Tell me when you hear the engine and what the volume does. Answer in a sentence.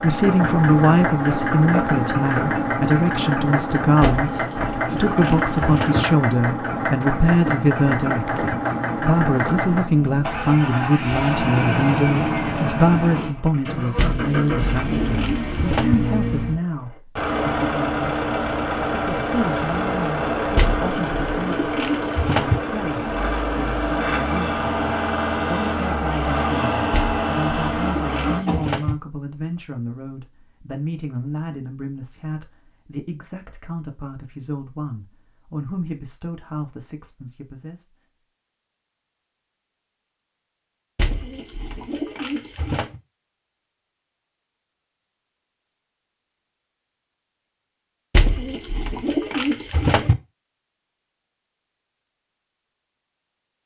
You can hear the engine from 0.0 to 28.6 s, at a steady volume.